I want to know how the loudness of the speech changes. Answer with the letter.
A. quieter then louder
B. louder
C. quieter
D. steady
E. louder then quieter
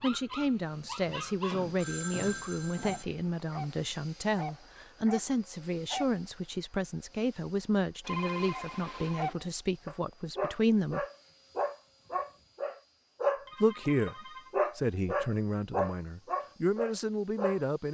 D.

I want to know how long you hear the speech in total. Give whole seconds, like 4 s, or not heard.
15 s.